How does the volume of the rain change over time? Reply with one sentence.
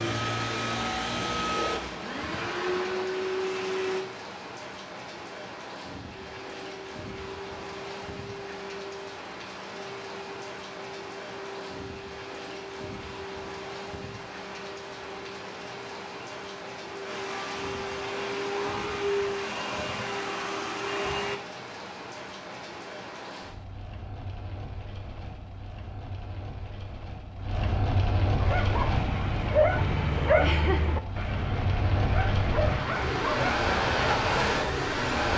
The loudness of the rain goes up.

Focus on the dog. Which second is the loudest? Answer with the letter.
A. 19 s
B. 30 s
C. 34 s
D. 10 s
B.